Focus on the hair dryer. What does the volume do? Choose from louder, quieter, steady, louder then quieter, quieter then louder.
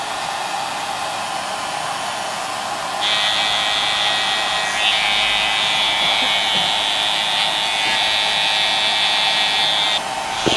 steady.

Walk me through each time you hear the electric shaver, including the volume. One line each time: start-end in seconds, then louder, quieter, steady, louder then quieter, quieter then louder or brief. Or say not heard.
3.0-10.5 steady.